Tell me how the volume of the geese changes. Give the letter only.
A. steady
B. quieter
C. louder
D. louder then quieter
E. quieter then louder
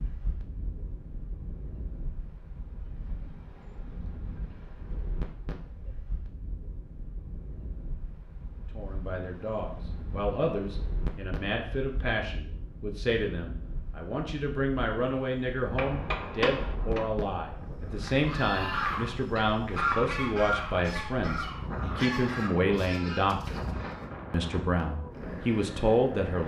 B.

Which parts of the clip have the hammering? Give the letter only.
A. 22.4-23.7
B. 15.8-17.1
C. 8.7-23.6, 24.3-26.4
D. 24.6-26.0
B.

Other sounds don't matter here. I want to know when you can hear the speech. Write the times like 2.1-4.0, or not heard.
8.7-23.6, 24.3-26.4.